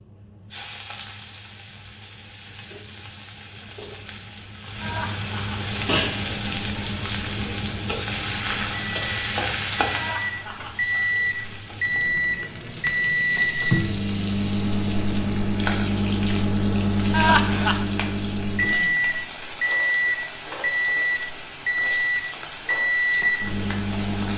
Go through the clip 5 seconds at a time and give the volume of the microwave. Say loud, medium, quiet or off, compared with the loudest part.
off, quiet, loud, loud, loud.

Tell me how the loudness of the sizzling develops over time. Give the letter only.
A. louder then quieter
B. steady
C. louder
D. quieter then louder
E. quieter
A.